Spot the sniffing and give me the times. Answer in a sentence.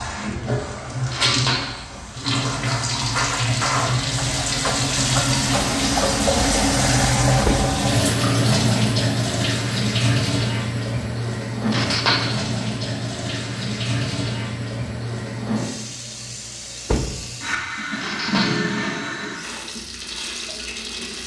You can hear the sniffing from 1.1 to 1.9 s, from 11.7 to 12.4 s and from 17.9 to 18.8 s.